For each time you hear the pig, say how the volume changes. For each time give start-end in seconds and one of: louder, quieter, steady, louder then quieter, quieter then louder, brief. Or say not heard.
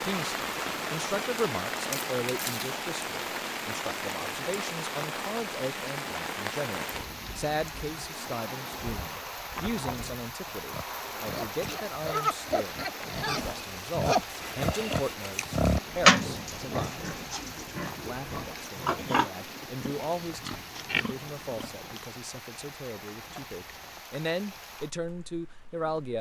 10.7-22.1 louder then quieter.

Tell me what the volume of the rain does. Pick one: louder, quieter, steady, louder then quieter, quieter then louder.
quieter.